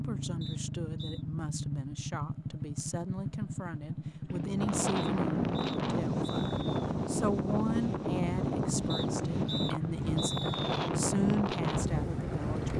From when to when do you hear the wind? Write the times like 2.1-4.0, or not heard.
4.5-12.7.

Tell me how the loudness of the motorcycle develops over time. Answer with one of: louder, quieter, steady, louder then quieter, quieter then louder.
steady.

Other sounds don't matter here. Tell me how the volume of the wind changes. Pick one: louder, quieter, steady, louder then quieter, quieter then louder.
steady.